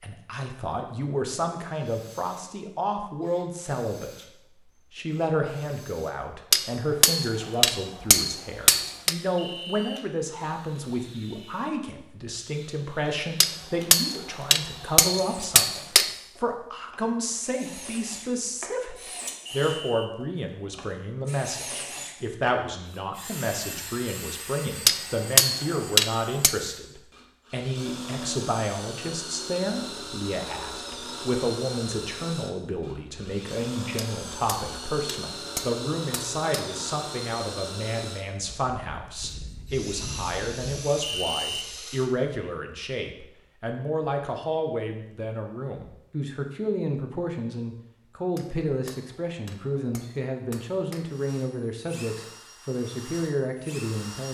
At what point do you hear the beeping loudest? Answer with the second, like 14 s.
41 s.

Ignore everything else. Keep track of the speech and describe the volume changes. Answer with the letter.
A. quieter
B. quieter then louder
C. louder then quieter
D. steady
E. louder
D.